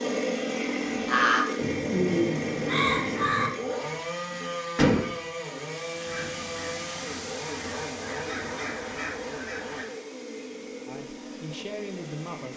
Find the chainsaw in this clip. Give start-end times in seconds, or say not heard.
0.0-12.5.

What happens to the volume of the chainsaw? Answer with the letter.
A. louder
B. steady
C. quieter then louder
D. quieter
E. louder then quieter
D.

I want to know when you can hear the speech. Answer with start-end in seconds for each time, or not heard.
10.8-12.5.